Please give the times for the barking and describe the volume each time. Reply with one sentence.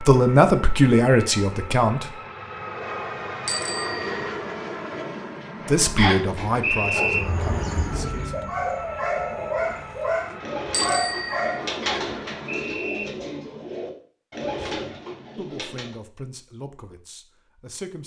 The barking can be heard from 6.3 to 11.8 s, getting louder.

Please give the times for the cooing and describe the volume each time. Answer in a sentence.
The cooing can be heard from 7.0 to 15.9 s, at a steady volume.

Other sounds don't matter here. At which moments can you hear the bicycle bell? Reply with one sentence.
You can hear the bicycle bell from 3.5 to 4.3 s and from 10.7 to 11.6 s.